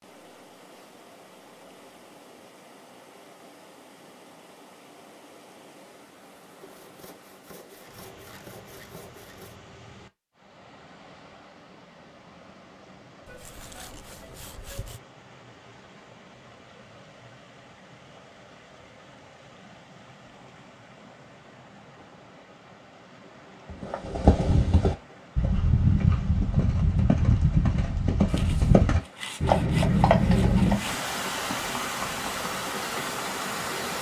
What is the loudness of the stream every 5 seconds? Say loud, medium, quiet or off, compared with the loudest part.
quiet, quiet, quiet, quiet, quiet, quiet, loud.